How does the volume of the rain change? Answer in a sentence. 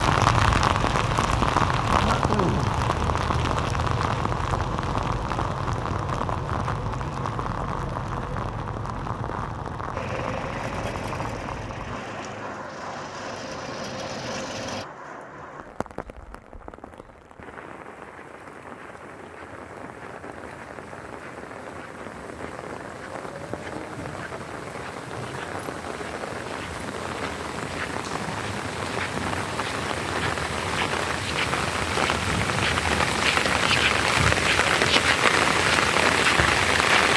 The volume of the rain goes down, then up.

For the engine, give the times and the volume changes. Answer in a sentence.
The engine can be heard from 9.9 to 14.8 s, getting quieter then louder.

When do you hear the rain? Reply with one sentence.
The rain can be heard from 0.0 to 37.1 s.